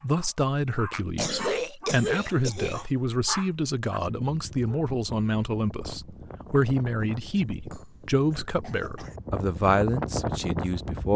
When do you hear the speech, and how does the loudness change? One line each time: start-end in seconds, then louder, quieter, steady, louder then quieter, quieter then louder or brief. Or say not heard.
0.0-11.1 steady.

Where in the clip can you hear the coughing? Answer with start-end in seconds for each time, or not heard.
0.9-2.9, 7.5-9.2.